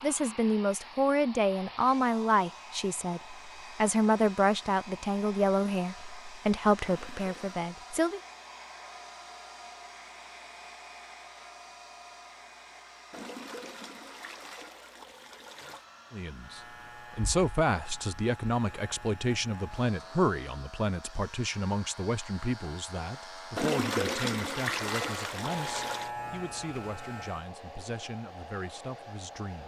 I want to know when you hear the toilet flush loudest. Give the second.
24 s.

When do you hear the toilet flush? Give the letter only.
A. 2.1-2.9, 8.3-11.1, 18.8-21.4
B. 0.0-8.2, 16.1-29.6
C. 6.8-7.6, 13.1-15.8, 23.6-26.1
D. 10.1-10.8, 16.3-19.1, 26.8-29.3
C.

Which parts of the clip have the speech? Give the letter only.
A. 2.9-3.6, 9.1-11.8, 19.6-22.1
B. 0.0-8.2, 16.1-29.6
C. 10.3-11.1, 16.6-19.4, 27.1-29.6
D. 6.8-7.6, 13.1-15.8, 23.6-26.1
B.